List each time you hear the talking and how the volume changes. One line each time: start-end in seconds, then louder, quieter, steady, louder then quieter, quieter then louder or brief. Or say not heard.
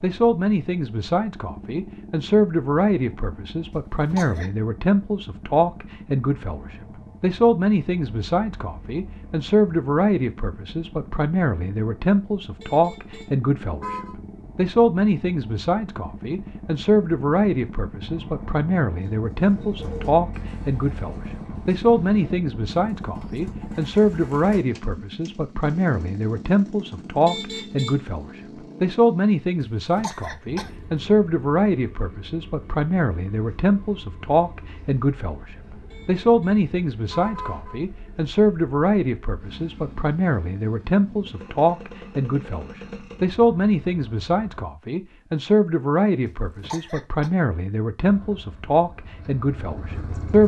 0.0-50.4 steady.